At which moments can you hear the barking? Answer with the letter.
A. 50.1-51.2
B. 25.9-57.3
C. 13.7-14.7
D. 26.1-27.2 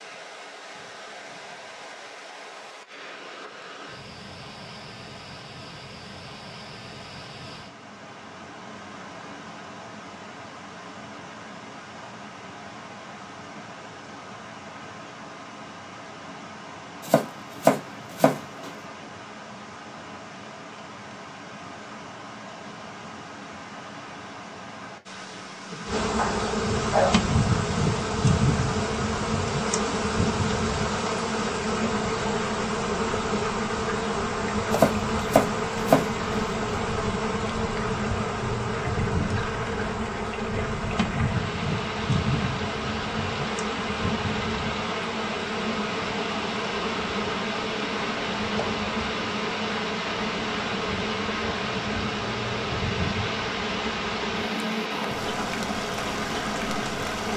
D.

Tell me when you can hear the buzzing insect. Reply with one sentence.
You can hear the buzzing insect from 25.9 to 57.3 s.